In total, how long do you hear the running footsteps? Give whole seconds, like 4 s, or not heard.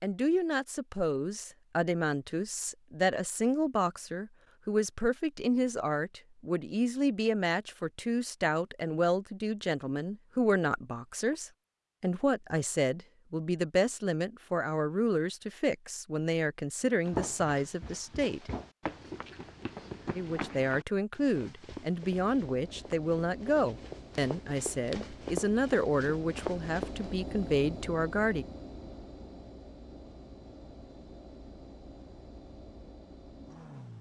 10 s.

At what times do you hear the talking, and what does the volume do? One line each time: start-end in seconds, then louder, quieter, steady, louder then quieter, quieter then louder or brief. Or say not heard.
0.0-18.5 steady
20.1-28.4 steady.